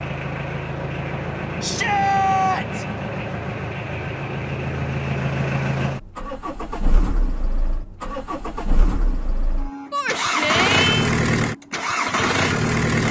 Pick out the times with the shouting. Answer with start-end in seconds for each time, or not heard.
1.6-2.9, 9.9-11.1.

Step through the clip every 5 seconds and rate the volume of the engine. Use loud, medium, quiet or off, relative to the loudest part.
medium, medium, loud.